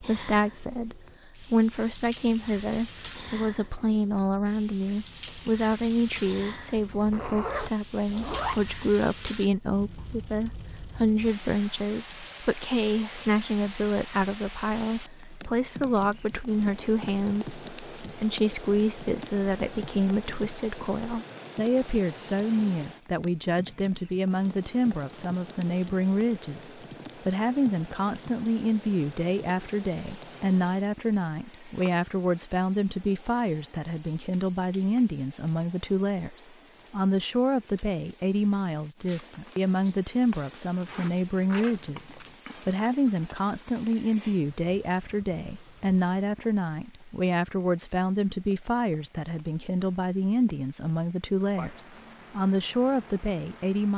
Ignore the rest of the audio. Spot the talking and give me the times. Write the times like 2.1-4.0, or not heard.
0.0-53.9.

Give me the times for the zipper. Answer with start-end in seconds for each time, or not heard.
6.7-8.9, 40.8-42.4.